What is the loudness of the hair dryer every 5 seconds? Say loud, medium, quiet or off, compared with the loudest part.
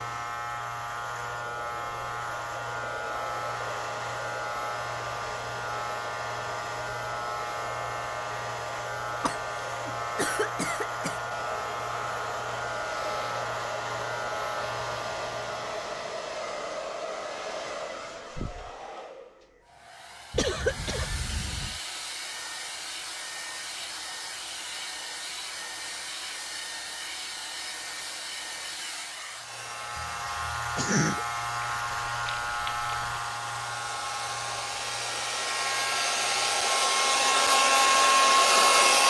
quiet, quiet, quiet, quiet, quiet, quiet, quiet, loud.